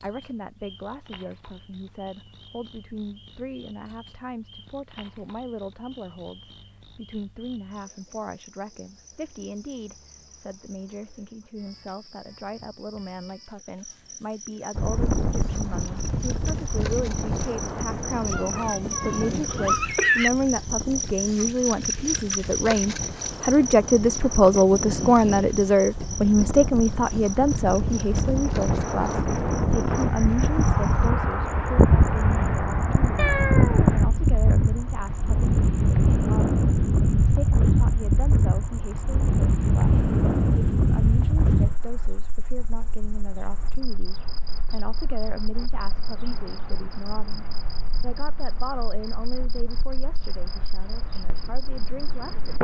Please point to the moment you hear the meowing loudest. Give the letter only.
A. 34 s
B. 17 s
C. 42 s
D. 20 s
D.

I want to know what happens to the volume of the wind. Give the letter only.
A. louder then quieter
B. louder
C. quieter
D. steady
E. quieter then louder
A.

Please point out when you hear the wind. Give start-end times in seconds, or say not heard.
14.8-52.5.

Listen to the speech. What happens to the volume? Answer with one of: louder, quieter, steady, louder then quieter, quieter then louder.
louder then quieter.